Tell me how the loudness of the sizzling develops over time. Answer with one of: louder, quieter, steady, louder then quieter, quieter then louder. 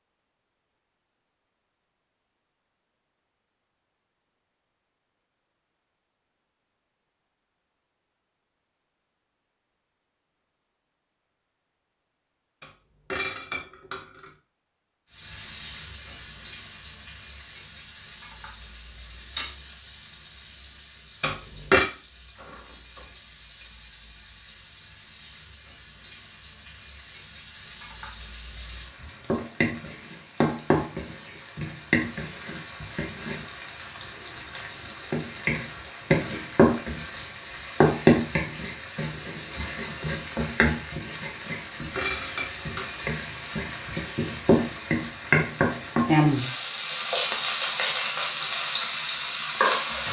louder.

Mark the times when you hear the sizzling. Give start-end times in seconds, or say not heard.
15.1-50.0.